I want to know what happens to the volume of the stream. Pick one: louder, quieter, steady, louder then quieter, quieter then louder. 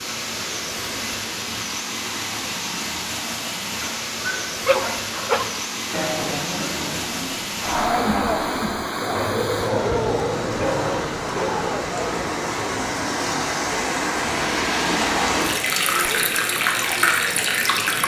louder.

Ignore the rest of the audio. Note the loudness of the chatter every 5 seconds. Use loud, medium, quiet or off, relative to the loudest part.
off, loud, loud, medium.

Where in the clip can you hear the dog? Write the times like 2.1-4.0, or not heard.
3.8-5.5, 9.2-11.7.